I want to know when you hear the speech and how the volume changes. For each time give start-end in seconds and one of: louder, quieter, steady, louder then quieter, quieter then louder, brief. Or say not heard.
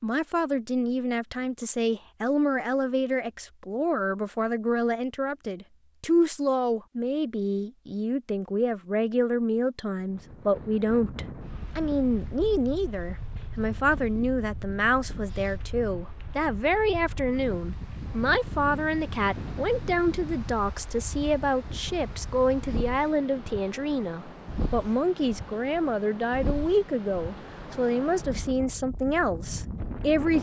0.0-30.3 steady.